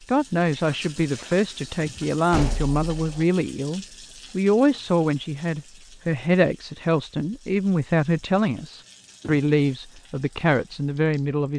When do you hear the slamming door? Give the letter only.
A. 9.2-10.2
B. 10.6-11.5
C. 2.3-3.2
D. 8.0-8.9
C.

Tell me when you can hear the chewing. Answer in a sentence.
The chewing can't be heard in this clip.